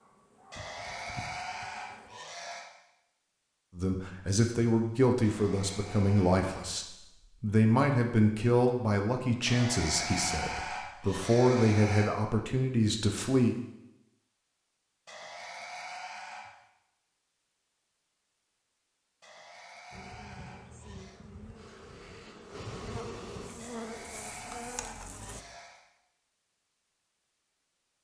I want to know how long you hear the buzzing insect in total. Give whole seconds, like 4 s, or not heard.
8 s.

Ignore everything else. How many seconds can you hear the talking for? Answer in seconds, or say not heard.
10 s.